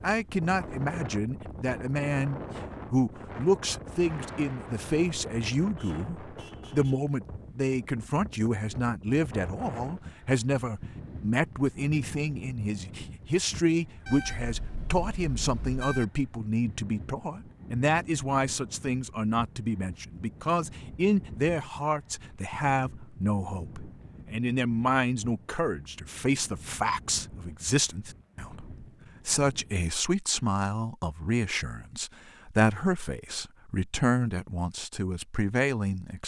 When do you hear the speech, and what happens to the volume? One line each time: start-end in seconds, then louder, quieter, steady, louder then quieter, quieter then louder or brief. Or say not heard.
0.0-36.2 steady.